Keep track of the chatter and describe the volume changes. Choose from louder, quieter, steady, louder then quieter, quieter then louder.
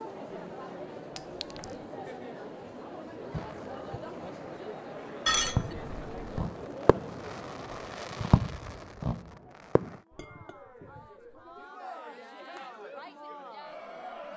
quieter then louder.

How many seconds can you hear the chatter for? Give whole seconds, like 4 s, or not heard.
14 s.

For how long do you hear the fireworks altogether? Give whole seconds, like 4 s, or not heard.
7 s.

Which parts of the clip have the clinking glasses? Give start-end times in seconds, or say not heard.
1.1-1.8, 5.2-6.3, 10.1-11.4.